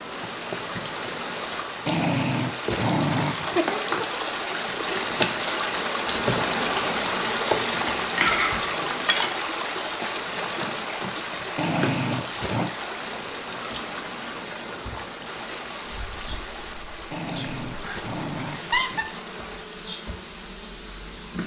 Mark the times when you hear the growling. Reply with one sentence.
The growling can be heard from 1.9 to 3.6 s, from 11.6 to 12.7 s and from 17.1 to 19.1 s.